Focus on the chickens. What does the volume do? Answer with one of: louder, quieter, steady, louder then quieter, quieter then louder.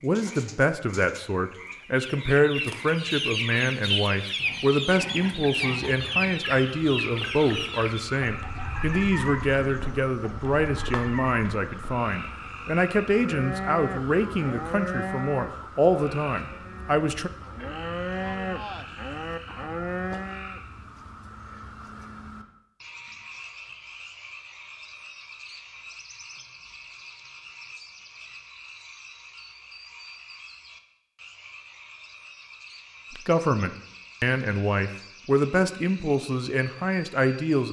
quieter.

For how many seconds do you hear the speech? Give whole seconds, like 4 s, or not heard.
22 s.